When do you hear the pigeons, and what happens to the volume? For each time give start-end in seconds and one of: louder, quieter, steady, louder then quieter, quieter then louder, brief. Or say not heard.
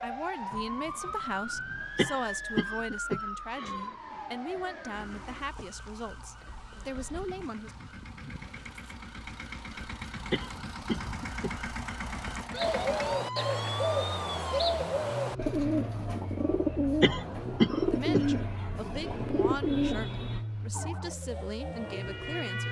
12.6-21.9 quieter.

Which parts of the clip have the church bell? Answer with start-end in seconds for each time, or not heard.
not heard.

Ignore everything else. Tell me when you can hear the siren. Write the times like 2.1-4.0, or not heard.
0.0-14.7, 20.7-22.6.